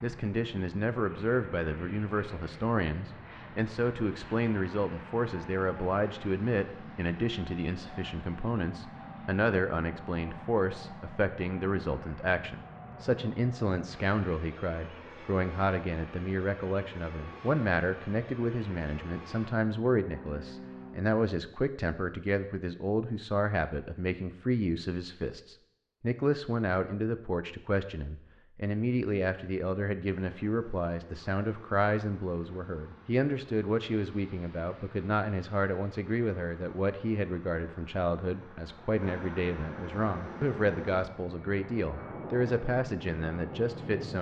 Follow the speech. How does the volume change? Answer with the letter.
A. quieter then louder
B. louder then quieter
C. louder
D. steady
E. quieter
D.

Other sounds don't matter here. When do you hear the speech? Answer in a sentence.
The speech can be heard from 0.0 to 44.1 s.